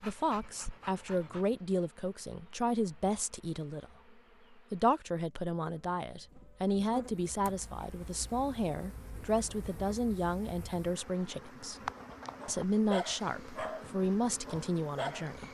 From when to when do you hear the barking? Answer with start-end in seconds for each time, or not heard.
0.0-1.5, 12.1-15.4.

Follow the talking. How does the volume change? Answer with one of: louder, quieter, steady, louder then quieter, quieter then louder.
steady.